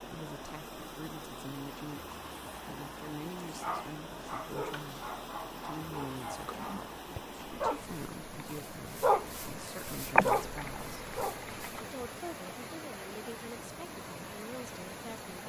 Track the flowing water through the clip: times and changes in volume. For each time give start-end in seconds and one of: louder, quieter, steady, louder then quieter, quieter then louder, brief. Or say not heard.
0.0-15.4 steady.